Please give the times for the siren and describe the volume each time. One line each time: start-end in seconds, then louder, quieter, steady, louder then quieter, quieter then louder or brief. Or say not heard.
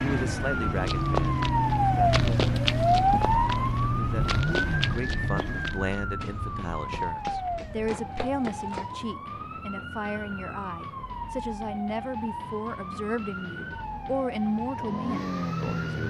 0.2-16.0 quieter.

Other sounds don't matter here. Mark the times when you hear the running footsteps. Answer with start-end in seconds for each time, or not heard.
0.8-9.2.